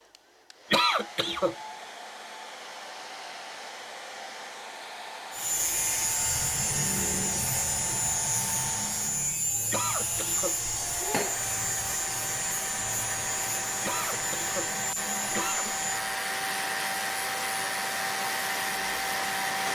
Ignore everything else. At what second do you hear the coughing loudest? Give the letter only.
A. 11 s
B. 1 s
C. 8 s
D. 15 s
B.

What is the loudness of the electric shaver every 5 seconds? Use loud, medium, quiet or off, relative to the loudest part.
off, loud, loud, medium.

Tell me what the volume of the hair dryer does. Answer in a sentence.
The loudness of the hair dryer goes up.